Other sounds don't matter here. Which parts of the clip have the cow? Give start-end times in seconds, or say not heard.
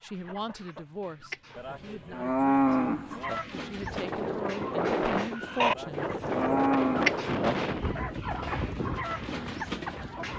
1.6-3.4, 5.7-7.5.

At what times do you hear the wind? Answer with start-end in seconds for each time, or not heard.
3.8-10.3.